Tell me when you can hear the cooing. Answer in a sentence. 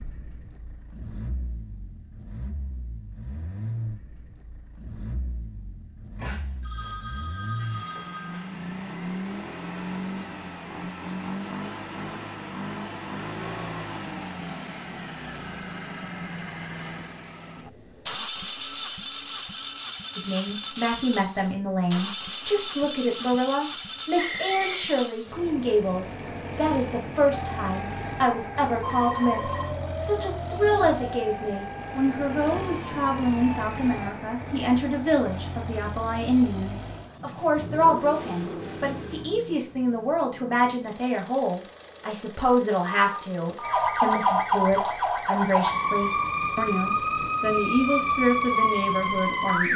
The cooing can't be heard in this clip.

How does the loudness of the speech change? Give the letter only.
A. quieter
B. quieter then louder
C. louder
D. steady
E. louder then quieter
D.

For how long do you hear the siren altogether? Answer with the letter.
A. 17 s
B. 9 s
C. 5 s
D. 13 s
D.